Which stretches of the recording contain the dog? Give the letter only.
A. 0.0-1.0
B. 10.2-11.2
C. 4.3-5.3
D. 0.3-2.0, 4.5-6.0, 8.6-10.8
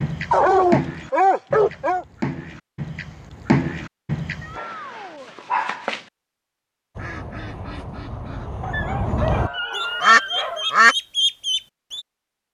D.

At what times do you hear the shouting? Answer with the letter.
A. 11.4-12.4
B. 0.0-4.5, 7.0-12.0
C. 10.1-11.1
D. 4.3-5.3
D.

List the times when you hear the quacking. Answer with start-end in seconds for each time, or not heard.
0.0-4.5, 7.0-12.0.